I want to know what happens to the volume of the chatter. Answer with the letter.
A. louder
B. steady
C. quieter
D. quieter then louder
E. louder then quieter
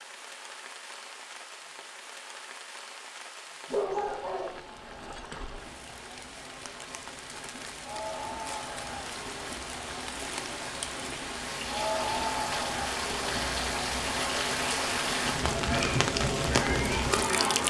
A.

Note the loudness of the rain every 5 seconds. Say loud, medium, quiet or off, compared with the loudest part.
quiet, quiet, loud, loud.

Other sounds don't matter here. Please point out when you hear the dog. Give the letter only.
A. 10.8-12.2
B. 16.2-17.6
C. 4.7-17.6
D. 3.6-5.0
D.